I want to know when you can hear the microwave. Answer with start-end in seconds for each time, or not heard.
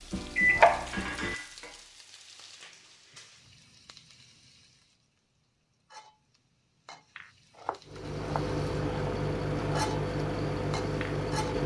0.0-1.6, 7.8-11.6.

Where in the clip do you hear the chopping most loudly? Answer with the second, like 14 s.
1 s.